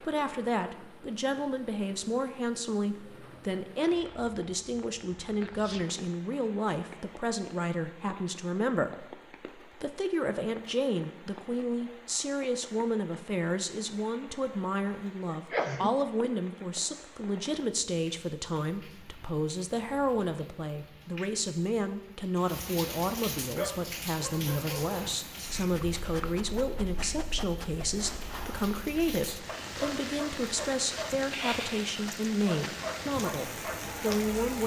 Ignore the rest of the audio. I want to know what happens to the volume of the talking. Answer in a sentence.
The loudness of the talking stays about the same.